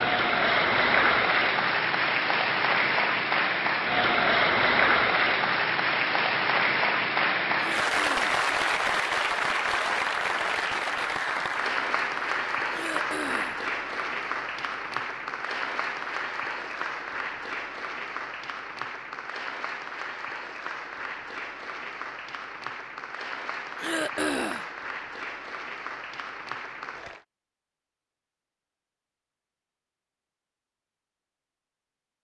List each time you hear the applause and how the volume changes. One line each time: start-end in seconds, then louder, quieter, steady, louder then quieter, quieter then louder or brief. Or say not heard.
0.0-27.2 quieter.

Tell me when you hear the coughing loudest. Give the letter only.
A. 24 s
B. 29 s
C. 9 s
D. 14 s
A.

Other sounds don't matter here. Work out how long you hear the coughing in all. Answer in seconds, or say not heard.
3 s.